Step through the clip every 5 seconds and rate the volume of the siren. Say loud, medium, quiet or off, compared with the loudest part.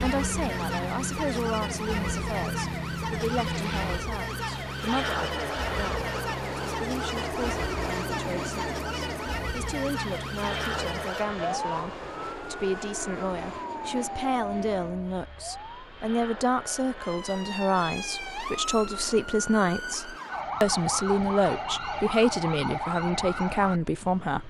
loud, loud, loud, medium, loud.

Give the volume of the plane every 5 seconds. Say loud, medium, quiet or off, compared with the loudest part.
loud, loud, loud, medium, quiet.